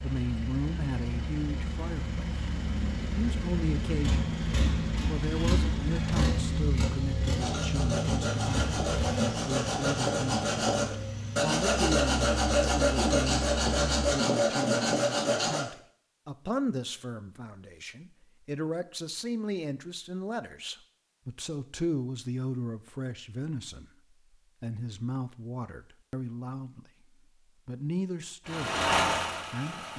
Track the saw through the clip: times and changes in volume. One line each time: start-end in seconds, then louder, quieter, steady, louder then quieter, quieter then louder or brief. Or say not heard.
7.3-15.7 louder.